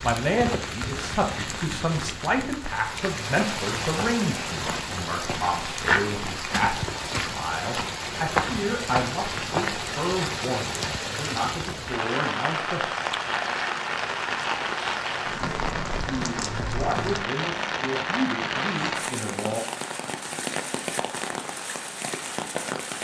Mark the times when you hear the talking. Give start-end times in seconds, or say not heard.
0.0-12.8, 16.1-19.6.